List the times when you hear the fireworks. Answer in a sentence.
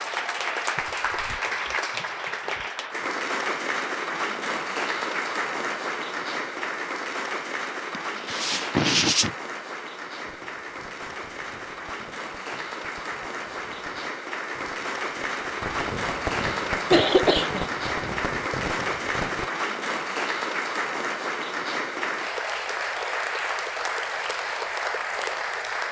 The fireworks can be heard from 10.2 to 19.5 s.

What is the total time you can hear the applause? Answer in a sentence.
The applause can be heard for 26 seconds in total.